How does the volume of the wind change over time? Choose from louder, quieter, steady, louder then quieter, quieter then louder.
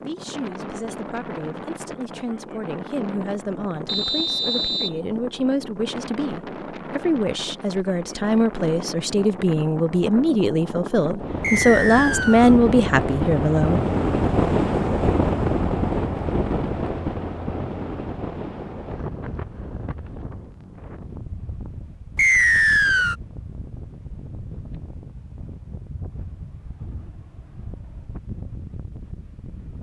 louder then quieter.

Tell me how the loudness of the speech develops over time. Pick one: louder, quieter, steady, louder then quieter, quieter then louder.
louder.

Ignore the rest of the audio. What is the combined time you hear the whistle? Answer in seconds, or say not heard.
3 s.